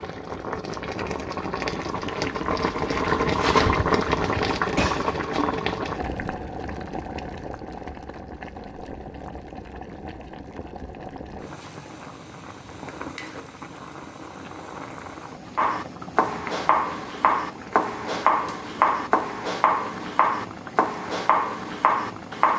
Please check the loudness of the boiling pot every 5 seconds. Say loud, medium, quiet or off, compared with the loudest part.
loud, medium, quiet, quiet, quiet.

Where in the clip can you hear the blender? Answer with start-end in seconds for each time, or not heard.
not heard.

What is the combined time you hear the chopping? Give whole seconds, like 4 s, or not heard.
7 s.